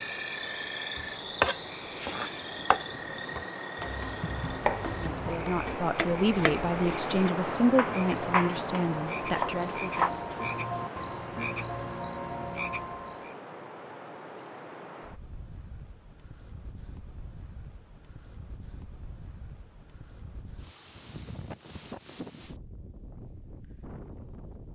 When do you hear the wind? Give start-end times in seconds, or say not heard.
0.0-24.7.